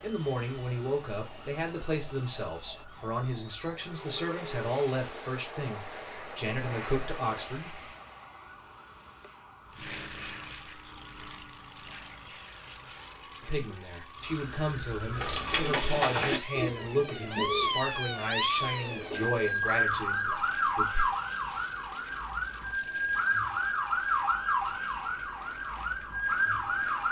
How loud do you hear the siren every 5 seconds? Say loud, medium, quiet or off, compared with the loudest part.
quiet, quiet, quiet, loud, loud, loud.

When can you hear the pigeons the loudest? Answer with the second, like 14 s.
16 s.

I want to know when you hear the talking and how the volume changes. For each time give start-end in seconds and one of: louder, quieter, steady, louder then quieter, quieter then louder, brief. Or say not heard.
0.0-7.8 steady
13.4-21.1 steady.